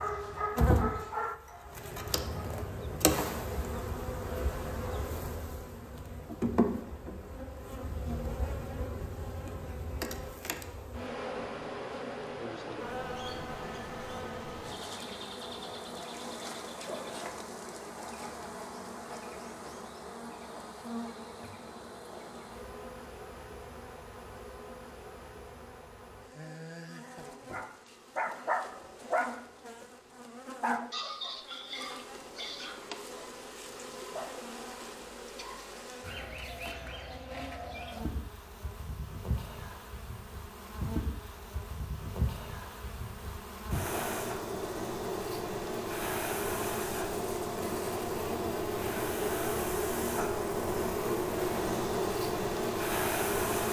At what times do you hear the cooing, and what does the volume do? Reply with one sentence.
You can't hear the cooing here.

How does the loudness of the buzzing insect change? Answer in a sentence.
The volume of the buzzing insect goes down, then up.